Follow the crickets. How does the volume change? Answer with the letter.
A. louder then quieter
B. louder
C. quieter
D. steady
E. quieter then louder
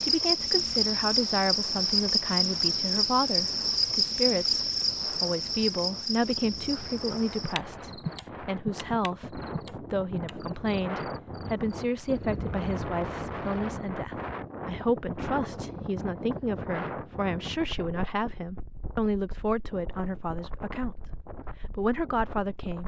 C.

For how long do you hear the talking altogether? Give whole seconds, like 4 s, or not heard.
22 s.